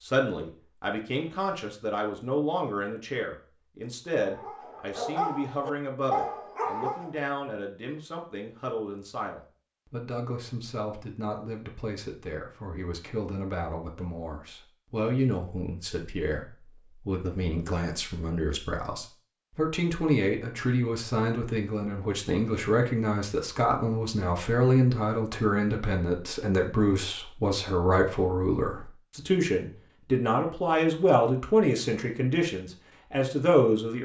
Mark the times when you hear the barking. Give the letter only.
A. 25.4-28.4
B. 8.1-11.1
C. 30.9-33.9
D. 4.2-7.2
D.